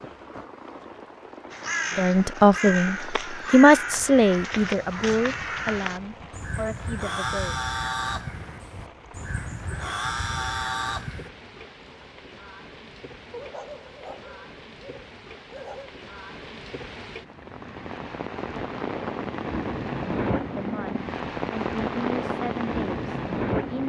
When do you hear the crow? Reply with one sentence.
You can hear the crow from 1.5 to 11.3 s.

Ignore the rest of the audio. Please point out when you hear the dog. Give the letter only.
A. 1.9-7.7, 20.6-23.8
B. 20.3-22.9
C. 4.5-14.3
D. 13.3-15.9
D.